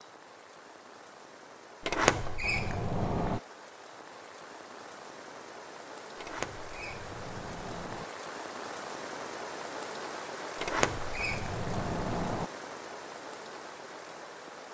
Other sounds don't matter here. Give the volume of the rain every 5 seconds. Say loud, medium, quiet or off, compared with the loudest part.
medium, loud, loud.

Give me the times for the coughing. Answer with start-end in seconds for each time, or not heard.
not heard.